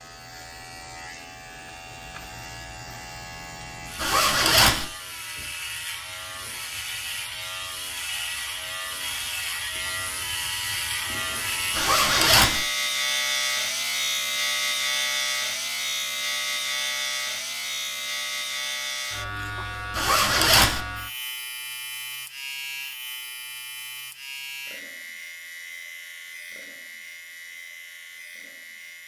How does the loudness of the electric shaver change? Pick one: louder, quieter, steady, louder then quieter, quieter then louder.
louder then quieter.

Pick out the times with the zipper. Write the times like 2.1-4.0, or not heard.
4.0-4.8, 11.7-12.6, 19.9-20.8.